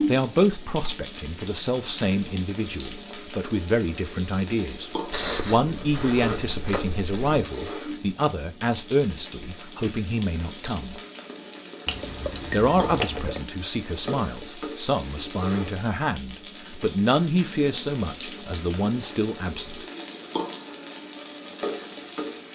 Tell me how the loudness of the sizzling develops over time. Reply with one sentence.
The volume of the sizzling stays about the same.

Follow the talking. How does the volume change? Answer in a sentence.
The volume of the talking stays about the same.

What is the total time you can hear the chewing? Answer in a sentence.
The chewing can be heard for 4 seconds in total.